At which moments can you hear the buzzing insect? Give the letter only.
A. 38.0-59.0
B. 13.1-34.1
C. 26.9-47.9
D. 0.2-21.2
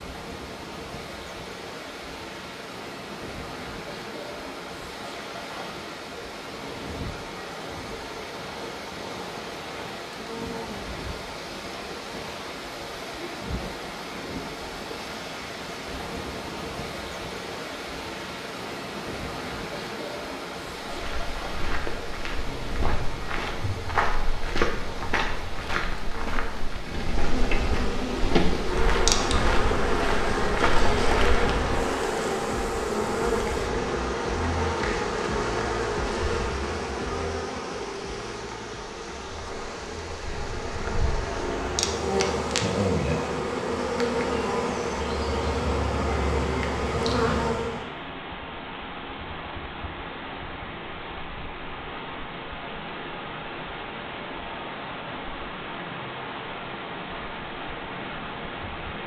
C.